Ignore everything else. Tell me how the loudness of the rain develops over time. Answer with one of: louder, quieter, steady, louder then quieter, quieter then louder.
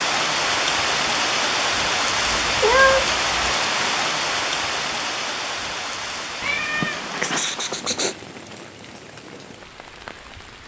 quieter.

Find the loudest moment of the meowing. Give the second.
3 s.